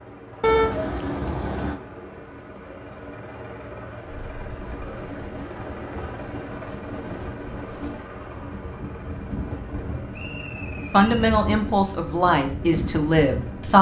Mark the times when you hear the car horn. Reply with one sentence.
You can hear the car horn from 0.4 to 1.8 s.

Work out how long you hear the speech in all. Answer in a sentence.
You can hear the speech for 3 seconds altogether.